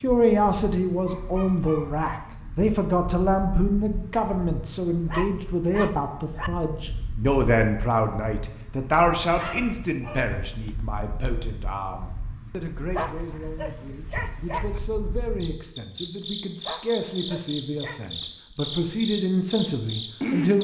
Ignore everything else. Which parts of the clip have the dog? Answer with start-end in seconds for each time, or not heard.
1.1-2.1, 5.1-6.5, 8.9-10.7, 12.9-14.8, 16.6-18.1.